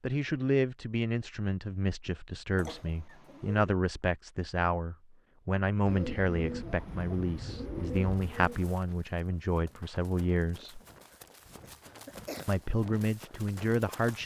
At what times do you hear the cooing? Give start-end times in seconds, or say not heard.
5.8-8.8.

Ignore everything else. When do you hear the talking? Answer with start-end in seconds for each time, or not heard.
0.0-10.8, 12.4-14.2.